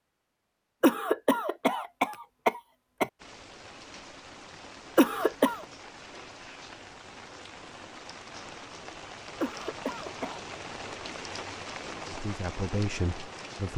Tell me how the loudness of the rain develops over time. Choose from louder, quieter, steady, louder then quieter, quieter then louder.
louder.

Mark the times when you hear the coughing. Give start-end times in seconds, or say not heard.
0.8-3.1, 5.0-5.7, 9.4-10.4.